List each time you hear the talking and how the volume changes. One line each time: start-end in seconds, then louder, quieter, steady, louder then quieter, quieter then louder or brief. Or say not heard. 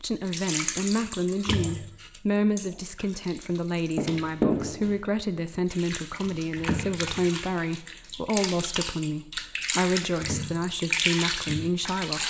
0.0-12.2 steady.